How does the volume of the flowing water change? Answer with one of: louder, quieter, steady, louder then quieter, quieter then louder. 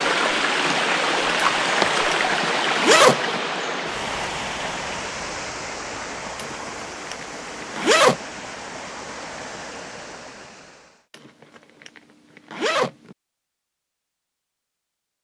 quieter.